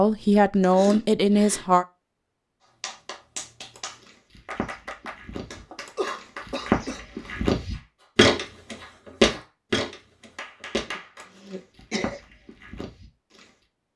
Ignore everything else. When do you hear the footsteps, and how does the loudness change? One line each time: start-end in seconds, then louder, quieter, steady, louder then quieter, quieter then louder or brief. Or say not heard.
3.8-13.5 louder then quieter.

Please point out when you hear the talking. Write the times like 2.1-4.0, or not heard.
0.0-1.9.